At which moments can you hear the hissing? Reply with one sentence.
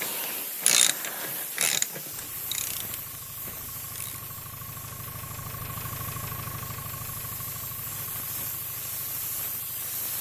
You can hear the hissing from 0.0 to 10.1 s.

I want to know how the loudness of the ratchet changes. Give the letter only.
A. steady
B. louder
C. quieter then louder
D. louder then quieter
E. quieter
E.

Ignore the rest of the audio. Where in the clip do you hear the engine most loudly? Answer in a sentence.
The volume of the engine peaks at 6 seconds.